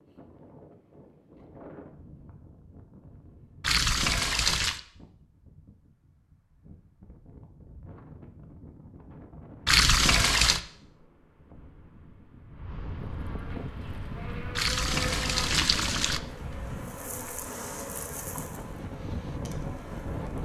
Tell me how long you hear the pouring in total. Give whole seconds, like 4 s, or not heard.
4 s.